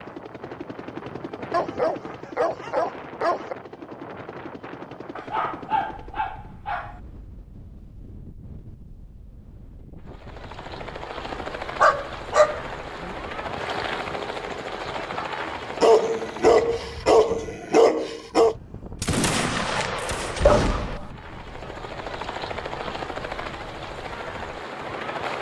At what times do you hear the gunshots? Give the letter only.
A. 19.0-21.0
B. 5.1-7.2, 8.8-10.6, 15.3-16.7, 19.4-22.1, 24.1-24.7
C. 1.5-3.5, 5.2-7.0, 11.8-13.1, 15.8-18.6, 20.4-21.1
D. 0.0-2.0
A.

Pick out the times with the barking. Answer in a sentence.
The barking can be heard from 1.5 to 3.5 s, from 5.2 to 7.0 s, from 11.8 to 13.1 s, from 15.8 to 18.6 s and from 20.4 to 21.1 s.